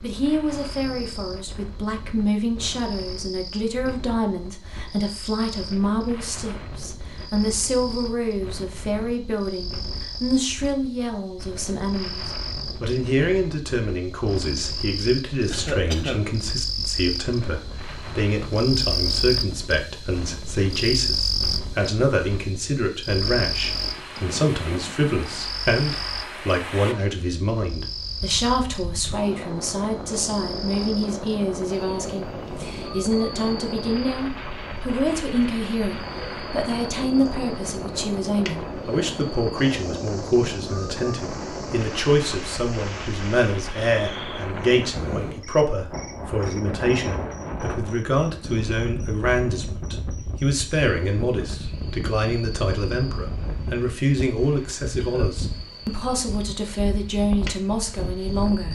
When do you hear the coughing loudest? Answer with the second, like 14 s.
16 s.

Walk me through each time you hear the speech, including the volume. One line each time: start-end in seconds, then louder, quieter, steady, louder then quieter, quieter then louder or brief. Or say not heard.
0.0-58.7 steady.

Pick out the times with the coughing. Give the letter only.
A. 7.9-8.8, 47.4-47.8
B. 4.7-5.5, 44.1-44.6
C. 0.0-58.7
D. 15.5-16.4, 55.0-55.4
D.